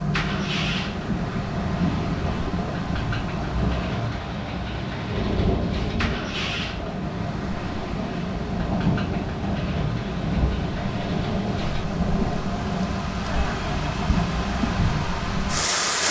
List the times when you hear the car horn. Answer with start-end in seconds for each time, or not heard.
1.1-2.6.